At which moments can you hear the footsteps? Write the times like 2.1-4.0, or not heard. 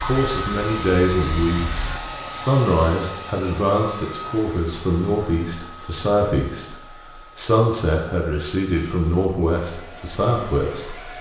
not heard.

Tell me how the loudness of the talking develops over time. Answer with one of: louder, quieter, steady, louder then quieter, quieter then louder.
steady.